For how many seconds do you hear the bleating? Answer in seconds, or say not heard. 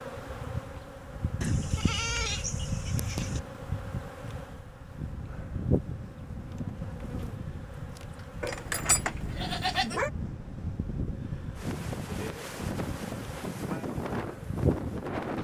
4 s.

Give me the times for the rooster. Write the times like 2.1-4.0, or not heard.
not heard.